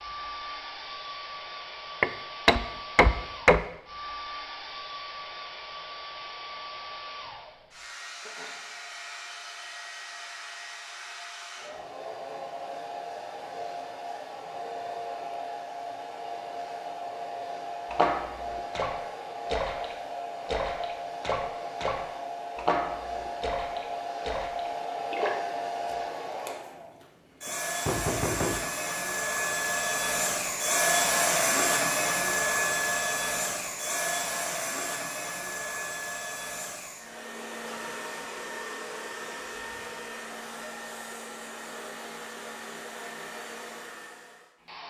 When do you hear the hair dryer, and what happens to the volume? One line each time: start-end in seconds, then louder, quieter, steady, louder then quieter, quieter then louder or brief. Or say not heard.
0.0-44.8 louder then quieter.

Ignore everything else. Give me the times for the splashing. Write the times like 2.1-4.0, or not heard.
17.9-25.3.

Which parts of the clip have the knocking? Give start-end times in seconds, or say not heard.
2.0-3.6, 27.9-28.7.